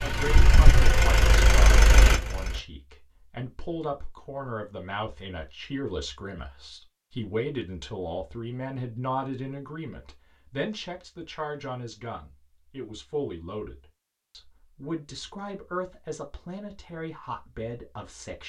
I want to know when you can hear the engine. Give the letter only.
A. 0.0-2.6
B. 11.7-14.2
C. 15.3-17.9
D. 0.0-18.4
A.